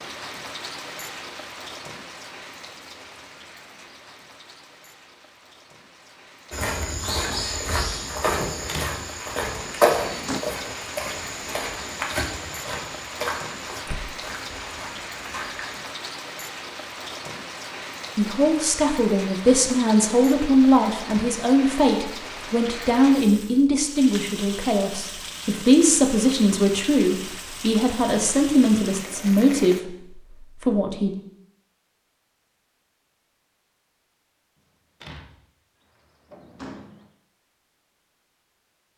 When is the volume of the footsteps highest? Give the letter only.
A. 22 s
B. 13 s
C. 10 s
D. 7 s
C.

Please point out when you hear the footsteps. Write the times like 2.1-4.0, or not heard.
6.5-15.8.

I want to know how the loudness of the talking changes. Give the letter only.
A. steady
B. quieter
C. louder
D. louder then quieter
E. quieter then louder
A.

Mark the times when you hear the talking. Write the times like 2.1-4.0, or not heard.
18.1-31.1.